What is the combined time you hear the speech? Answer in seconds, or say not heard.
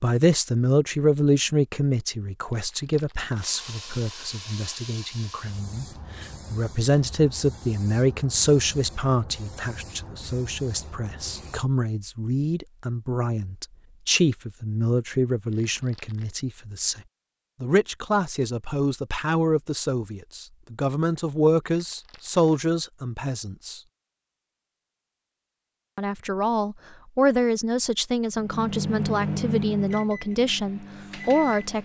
29 s.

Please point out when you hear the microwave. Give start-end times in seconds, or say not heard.
28.4-31.8.